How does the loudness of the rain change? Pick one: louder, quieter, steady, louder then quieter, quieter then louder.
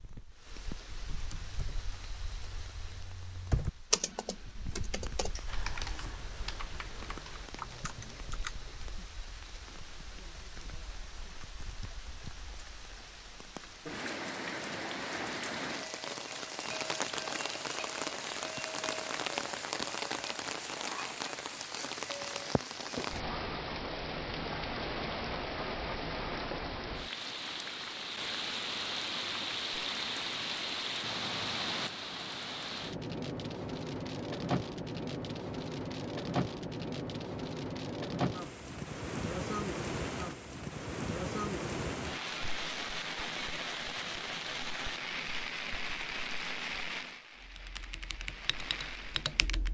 louder.